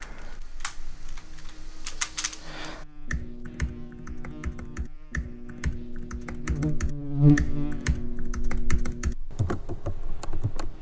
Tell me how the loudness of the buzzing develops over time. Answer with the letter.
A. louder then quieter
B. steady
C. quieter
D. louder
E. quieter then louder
A.